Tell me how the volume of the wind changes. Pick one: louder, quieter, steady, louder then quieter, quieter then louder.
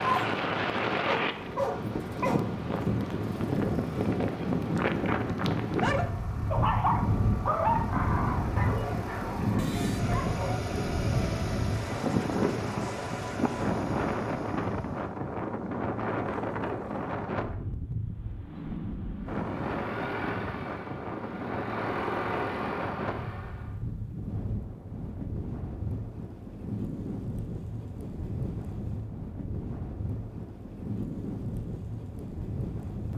quieter.